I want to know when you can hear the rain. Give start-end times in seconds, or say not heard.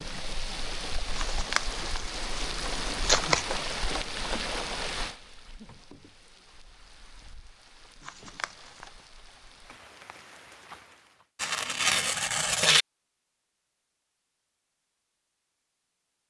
0.0-11.2.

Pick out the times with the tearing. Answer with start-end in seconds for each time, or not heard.
1.1-3.5, 8.1-8.8, 11.3-12.8.